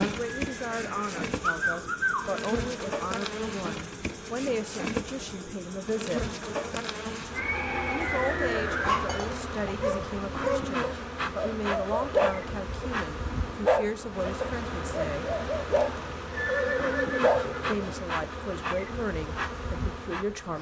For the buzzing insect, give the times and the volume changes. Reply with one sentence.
The buzzing insect can be heard from 0.0 to 20.5 s, at a steady volume.